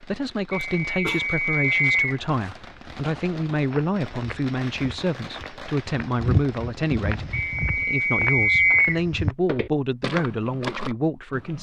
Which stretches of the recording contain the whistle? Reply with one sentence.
You can hear the whistle from 0.5 to 2.2 s and from 7.3 to 9.0 s.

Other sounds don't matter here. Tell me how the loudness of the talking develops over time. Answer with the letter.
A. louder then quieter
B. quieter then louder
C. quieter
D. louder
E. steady
E.